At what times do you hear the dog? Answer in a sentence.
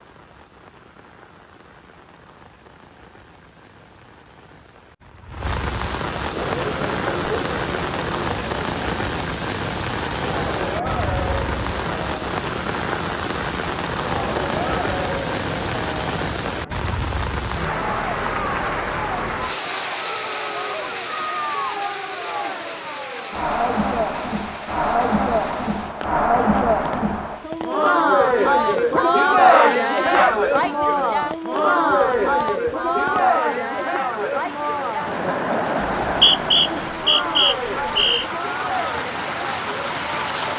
The dog can be heard from 28.9 to 30.4 s.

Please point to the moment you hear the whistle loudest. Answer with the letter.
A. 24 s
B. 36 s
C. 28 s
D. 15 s
B.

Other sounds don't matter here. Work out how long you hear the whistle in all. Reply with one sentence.
You can hear the whistle for 2 seconds altogether.